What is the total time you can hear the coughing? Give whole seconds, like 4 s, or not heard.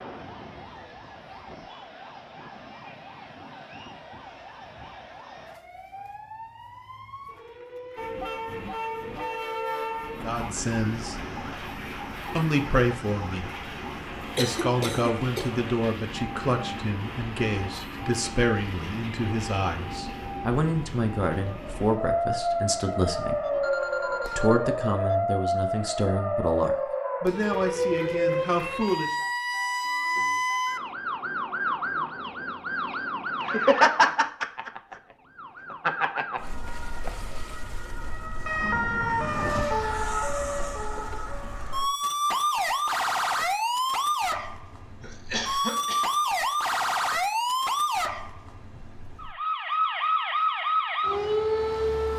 2 s.